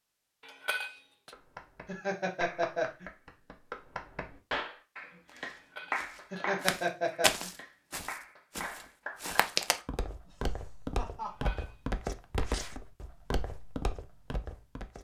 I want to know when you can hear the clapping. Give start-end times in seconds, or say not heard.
1.3-9.8.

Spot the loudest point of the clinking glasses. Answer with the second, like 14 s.
1 s.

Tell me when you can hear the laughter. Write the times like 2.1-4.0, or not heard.
1.9-3.0, 6.3-7.5, 10.2-11.7.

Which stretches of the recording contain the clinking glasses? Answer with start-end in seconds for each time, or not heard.
0.4-1.3, 5.5-6.7, 11.2-11.8.